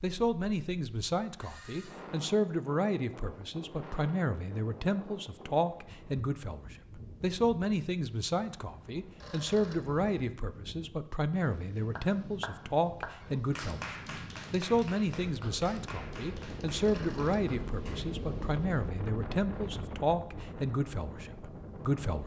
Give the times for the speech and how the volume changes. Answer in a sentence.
You can hear the speech from 0.0 to 22.2 s, at a steady volume.